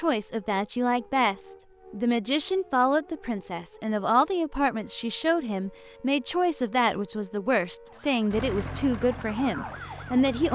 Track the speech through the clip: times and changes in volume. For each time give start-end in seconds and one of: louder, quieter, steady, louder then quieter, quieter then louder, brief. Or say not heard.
0.0-10.5 steady.